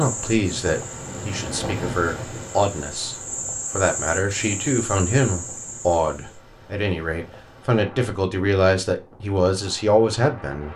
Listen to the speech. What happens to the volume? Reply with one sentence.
The loudness of the speech goes up.